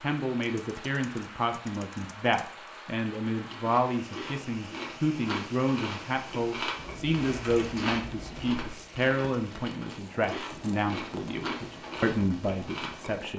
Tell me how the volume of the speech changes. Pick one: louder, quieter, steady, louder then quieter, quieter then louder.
steady.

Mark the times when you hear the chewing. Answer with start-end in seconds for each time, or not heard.
3.3-13.3.